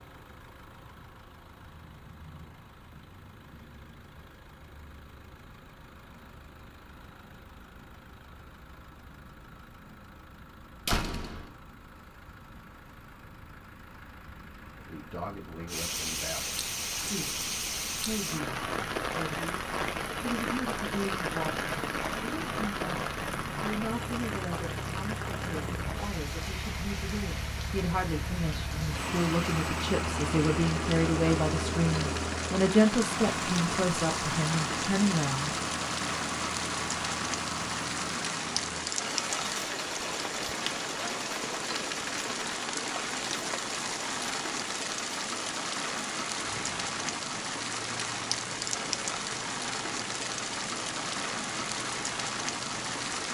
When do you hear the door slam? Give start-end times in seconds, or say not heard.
10.8-11.5.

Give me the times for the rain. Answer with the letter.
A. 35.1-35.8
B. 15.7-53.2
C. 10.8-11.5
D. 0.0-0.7
B.